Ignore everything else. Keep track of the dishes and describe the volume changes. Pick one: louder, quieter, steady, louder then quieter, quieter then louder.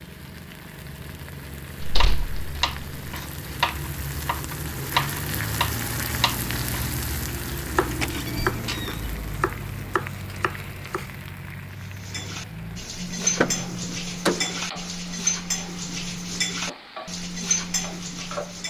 steady.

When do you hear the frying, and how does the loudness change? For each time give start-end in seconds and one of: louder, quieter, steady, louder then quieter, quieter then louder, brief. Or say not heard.
0.0-18.6 louder then quieter.